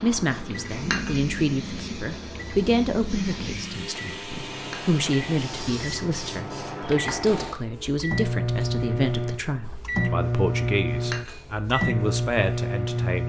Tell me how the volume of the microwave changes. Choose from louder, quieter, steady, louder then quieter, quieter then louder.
louder.